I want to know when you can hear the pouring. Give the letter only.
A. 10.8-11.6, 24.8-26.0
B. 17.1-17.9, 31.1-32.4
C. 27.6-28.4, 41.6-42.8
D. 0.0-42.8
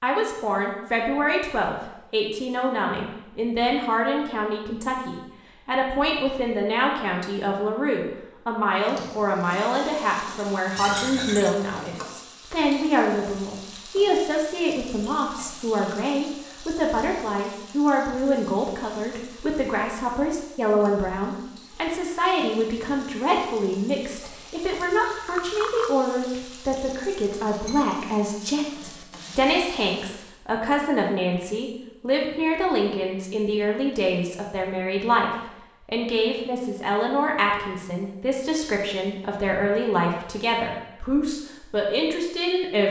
A.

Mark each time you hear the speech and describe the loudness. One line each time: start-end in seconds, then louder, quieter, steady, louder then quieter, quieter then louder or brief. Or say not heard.
0.0-42.8 steady.